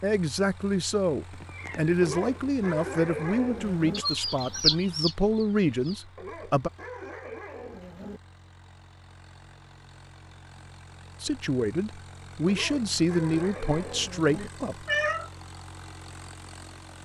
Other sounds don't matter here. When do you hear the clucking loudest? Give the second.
5 s.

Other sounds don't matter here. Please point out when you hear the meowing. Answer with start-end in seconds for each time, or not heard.
1.3-2.3, 14.4-15.3.